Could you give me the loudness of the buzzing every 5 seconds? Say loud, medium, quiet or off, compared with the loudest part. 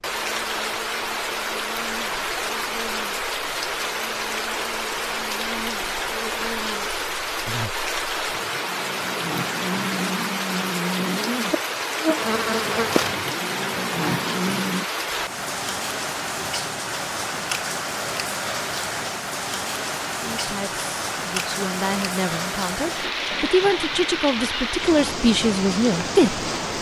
quiet, medium, loud, off, off, off.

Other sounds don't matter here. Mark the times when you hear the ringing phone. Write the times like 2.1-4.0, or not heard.
not heard.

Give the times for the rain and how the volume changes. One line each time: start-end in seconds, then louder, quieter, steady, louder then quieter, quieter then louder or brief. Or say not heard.
0.0-26.7 steady.